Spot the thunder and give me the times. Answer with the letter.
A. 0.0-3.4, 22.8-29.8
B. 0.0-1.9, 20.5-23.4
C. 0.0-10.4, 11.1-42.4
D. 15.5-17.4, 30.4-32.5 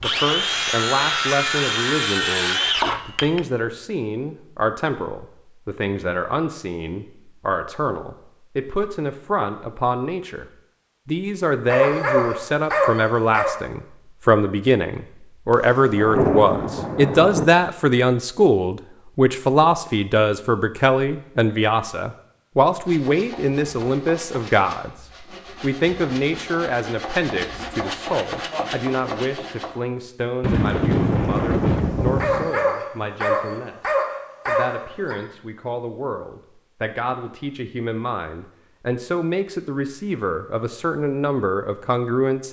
D.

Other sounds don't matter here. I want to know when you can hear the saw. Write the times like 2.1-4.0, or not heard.
0.0-3.4, 22.8-29.8.